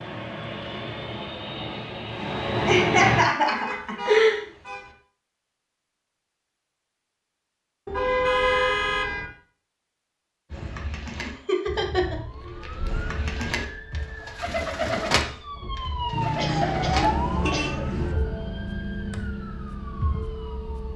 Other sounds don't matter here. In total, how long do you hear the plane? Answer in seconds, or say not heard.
3 s.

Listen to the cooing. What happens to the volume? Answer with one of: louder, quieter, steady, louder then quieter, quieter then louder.
louder then quieter.